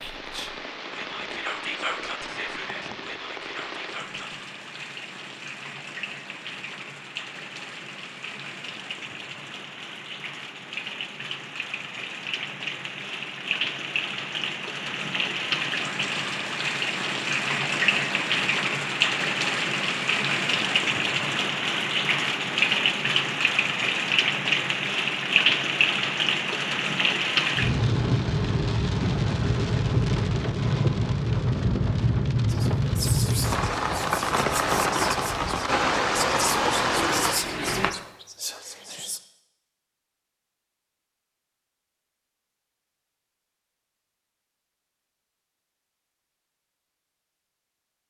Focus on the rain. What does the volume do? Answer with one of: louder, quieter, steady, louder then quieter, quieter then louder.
louder.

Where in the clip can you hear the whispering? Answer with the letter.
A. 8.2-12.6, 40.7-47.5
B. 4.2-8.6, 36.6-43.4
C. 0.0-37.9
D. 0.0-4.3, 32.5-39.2
D.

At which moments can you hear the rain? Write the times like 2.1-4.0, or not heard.
0.0-37.9.